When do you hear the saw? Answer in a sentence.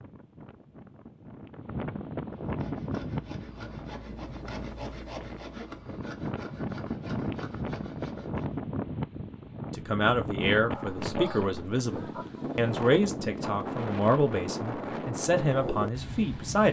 You can hear the saw from 2.5 to 8.5 s.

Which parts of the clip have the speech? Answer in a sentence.
You can hear the speech from 9.8 to 16.6 s.